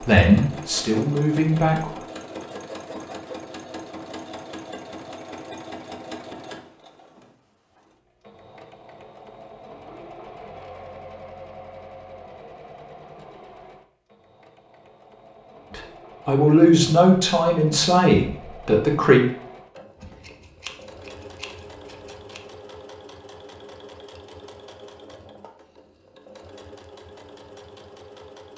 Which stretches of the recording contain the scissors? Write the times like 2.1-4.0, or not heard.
19.9-22.4.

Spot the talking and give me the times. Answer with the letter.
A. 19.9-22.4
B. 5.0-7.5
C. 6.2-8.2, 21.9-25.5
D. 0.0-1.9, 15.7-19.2
D.